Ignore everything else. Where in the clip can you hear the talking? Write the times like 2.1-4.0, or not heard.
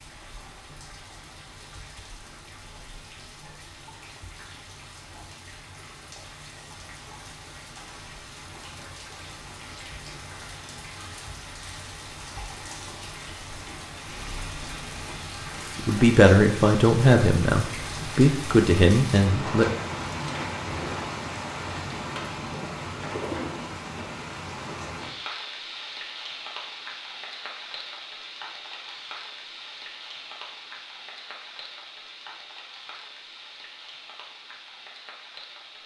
15.8-19.6.